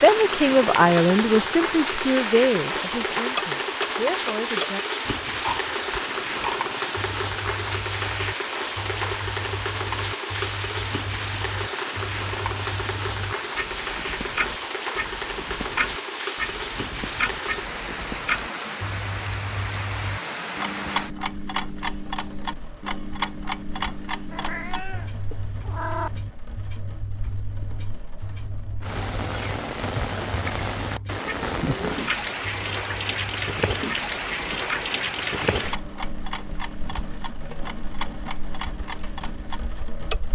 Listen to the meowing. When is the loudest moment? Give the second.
26 s.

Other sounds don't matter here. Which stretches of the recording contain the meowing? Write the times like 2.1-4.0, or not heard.
24.3-26.1.